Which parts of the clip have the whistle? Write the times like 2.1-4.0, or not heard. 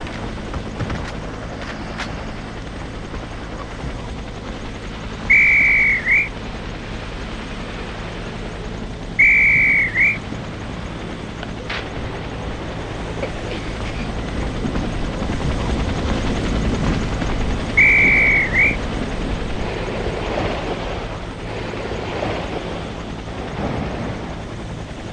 5.2-6.3, 9.2-10.2, 17.8-18.8.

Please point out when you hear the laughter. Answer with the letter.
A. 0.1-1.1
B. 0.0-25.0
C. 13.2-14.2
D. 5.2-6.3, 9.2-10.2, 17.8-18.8
C.